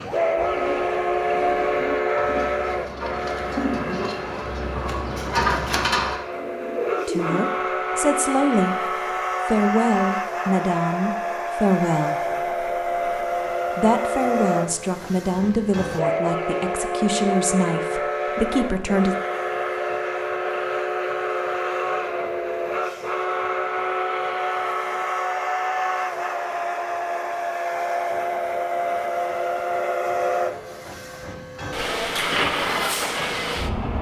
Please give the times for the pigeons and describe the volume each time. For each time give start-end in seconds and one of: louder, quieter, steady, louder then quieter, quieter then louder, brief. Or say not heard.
0.3-7.4 louder.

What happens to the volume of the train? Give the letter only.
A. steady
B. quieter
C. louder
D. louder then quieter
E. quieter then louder
A.